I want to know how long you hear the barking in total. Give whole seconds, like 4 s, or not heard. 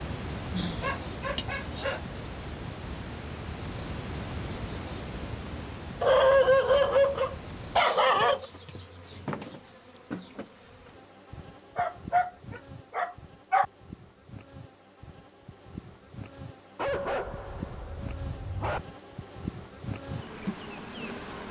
8 s.